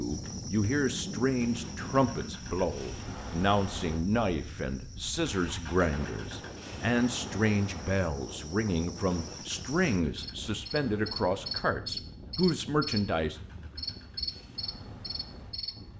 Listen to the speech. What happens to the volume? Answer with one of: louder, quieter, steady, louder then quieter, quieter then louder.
steady.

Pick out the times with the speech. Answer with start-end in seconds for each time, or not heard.
0.0-13.3.